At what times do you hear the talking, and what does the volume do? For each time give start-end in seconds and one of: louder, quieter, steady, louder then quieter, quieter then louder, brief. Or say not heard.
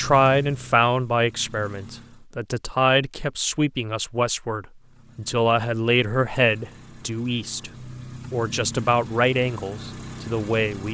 0.0-10.8 steady.